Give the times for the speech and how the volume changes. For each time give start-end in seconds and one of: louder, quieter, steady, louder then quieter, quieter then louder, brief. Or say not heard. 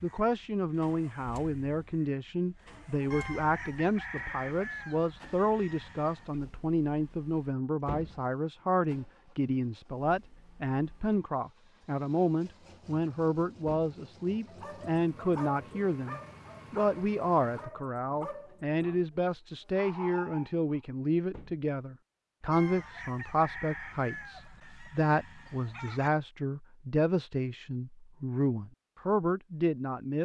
0.0-30.2 steady.